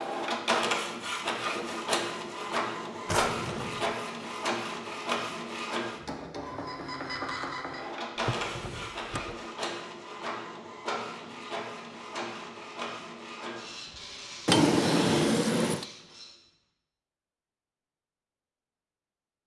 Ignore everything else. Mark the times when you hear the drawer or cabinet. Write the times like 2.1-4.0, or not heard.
3.0-3.9, 8.2-9.4, 14.4-15.8.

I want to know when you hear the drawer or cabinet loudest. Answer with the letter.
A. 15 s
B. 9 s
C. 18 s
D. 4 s
A.